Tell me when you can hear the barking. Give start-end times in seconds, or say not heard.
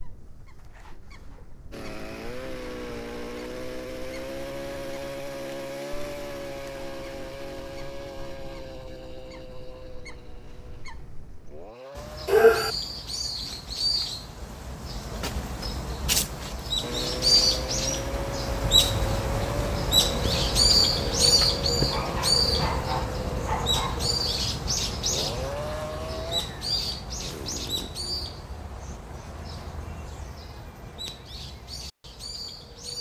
12.2-12.8, 21.4-24.1.